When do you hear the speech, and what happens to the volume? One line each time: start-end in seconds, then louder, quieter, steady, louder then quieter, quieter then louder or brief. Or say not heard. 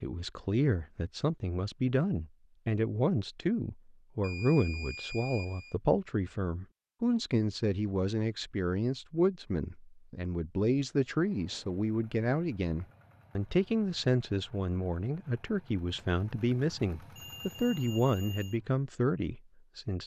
0.0-20.0 steady.